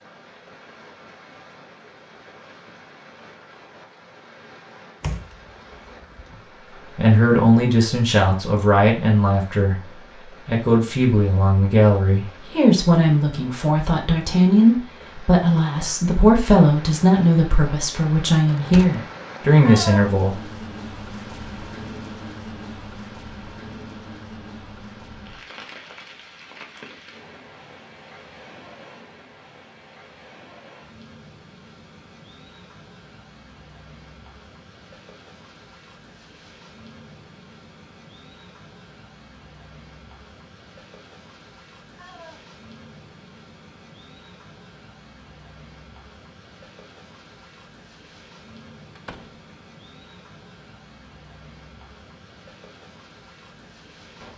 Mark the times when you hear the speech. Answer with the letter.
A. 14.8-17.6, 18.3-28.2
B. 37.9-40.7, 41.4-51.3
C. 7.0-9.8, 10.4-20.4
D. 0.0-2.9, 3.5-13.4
C.